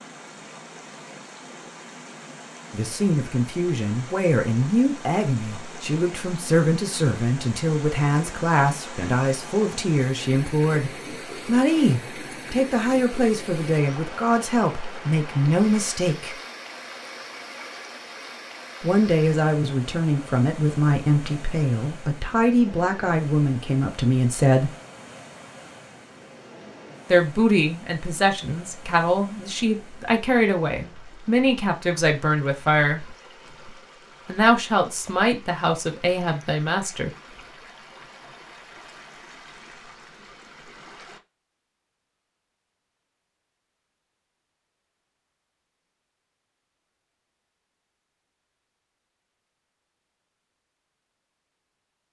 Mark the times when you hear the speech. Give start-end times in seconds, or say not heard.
2.7-16.4, 18.8-24.8, 27.1-33.0, 34.2-37.1.